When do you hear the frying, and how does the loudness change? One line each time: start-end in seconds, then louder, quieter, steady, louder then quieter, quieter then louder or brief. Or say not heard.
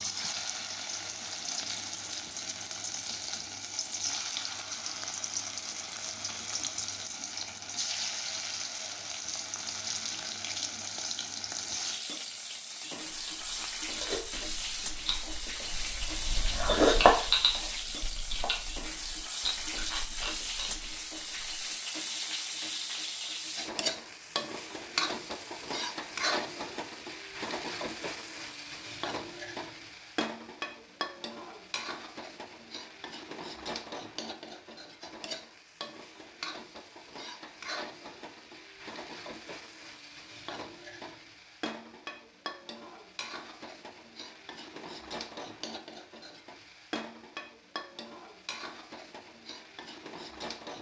0.0-50.7 quieter.